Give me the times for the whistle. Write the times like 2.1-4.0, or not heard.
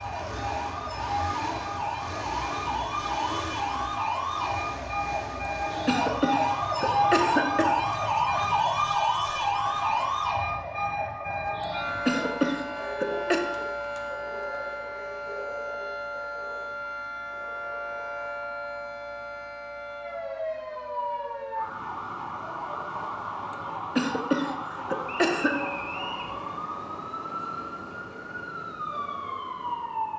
25.1-26.4.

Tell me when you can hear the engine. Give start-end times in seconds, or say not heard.
0.0-7.0.